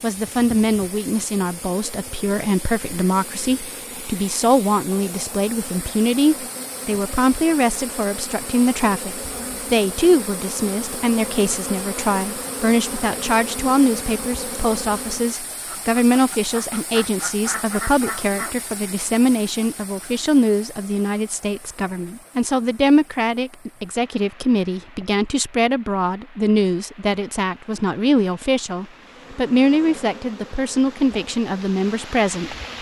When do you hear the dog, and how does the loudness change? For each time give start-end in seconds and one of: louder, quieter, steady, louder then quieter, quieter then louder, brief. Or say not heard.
not heard.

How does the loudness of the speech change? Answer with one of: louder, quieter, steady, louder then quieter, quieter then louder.
steady.